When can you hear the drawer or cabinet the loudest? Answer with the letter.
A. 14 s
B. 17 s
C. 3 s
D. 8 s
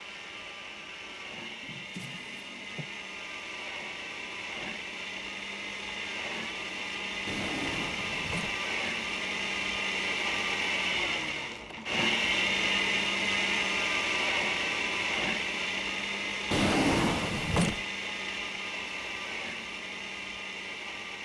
B.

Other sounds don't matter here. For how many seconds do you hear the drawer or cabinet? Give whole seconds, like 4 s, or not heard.
4 s.